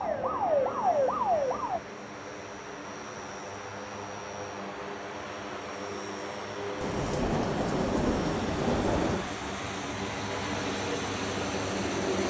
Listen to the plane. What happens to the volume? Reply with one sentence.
The volume of the plane goes up.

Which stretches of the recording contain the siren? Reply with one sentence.
You can hear the siren from 0.0 to 1.8 s.